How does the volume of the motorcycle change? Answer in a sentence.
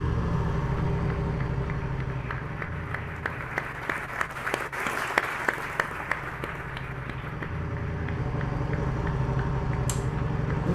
The volume of the motorcycle goes down, then up.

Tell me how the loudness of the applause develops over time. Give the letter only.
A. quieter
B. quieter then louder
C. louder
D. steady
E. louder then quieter
E.